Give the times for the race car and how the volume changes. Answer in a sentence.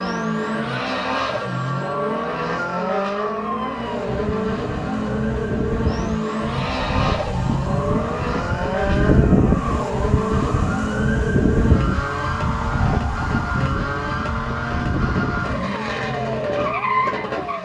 The race car can be heard from 0.0 to 17.6 s, at a steady volume.